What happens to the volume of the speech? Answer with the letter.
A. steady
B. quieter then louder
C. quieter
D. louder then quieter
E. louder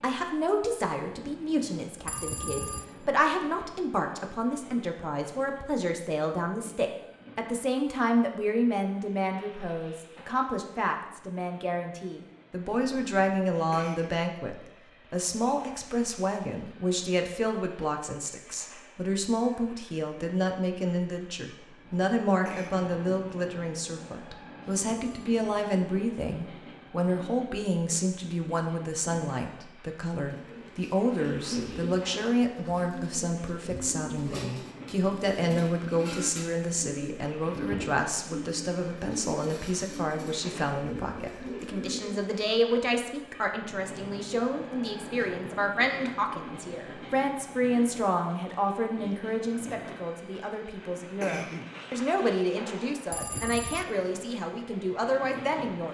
A.